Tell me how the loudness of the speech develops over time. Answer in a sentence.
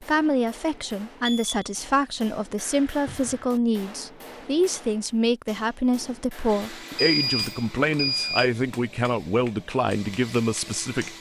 The volume of the speech stays about the same.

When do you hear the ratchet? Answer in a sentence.
You can't hear the ratchet here.